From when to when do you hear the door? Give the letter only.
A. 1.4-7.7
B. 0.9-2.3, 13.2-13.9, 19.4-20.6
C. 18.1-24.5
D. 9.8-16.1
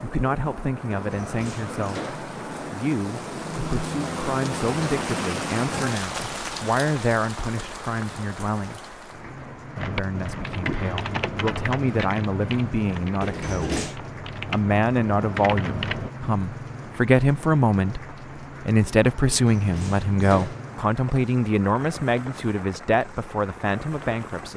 B.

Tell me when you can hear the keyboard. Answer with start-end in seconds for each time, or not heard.
9.8-16.1.